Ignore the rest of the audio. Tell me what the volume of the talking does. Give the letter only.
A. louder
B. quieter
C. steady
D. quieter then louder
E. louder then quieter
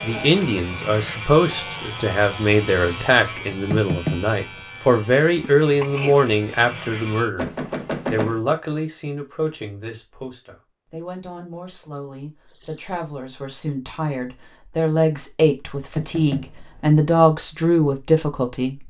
D.